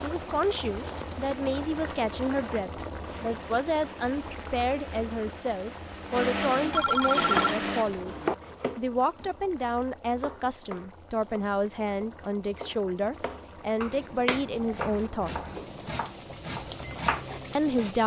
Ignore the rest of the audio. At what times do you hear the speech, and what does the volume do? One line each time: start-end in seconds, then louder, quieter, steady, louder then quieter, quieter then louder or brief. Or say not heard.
0.0-8.2 steady
8.8-15.5 steady
17.6-18.0 brief.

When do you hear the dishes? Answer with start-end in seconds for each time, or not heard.
not heard.